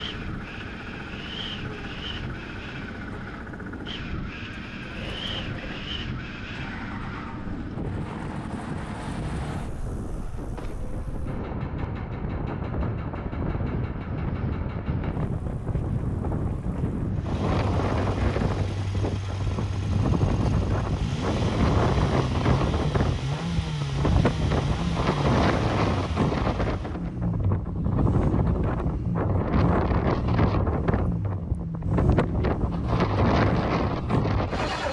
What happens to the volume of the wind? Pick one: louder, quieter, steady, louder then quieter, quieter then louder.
louder.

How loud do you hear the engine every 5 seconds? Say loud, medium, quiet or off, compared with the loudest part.
quiet, quiet, quiet, medium, loud, loud, loud.